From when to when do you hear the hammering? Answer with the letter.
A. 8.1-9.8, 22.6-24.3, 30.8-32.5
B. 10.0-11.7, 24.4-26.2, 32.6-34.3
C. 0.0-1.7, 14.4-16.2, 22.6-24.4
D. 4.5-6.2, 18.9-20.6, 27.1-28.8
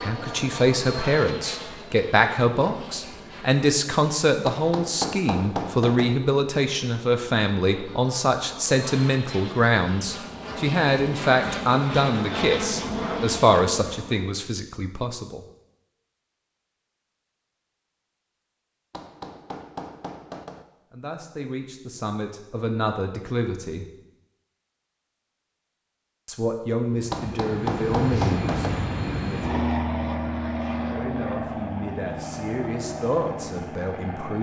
D.